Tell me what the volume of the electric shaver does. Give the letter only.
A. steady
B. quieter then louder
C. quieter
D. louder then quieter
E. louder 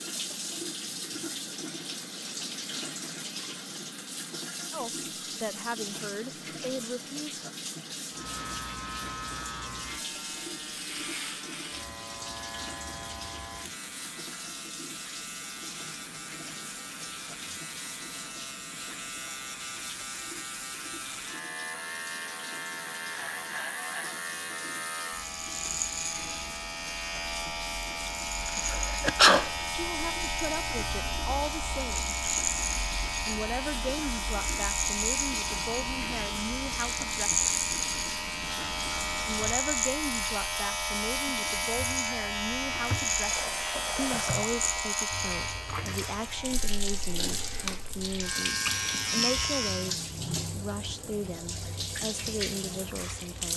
E.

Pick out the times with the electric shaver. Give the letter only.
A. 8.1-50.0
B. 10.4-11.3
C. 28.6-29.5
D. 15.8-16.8
A.